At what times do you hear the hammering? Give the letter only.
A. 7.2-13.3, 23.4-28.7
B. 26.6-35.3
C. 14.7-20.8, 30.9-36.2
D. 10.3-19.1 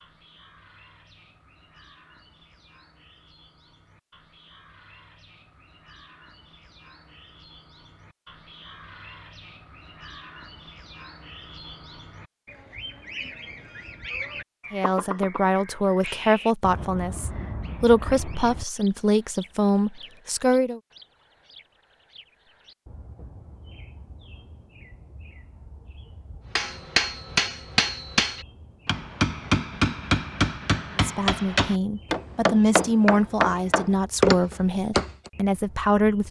B.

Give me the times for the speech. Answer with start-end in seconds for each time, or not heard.
14.7-20.8, 30.9-36.2.